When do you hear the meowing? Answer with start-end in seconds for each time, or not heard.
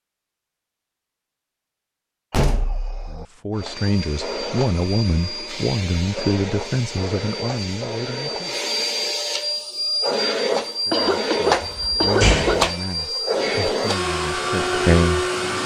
not heard.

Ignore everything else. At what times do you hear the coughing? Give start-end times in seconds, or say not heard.
10.9-12.7.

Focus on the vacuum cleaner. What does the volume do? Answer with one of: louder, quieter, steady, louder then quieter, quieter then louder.
louder.